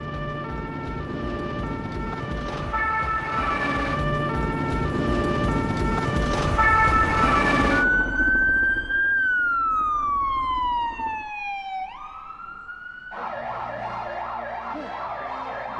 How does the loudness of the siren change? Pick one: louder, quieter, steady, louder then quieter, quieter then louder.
louder then quieter.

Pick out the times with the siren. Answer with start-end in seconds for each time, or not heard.
0.0-15.7.